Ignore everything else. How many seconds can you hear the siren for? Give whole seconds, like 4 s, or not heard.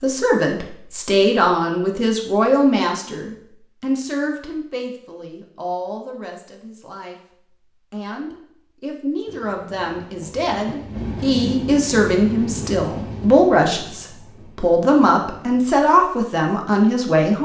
not heard.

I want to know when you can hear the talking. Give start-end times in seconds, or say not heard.
0.0-17.4.